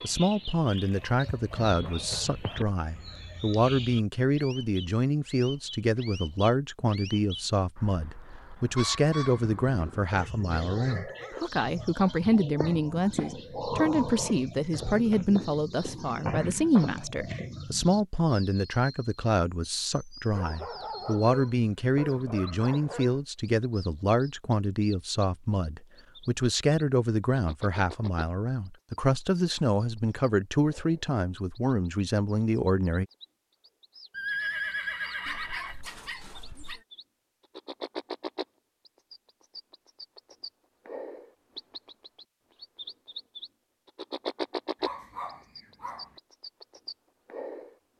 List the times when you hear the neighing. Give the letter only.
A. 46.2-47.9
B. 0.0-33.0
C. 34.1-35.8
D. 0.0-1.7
C.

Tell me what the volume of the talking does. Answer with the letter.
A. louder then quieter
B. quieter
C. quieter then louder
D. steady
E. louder
D.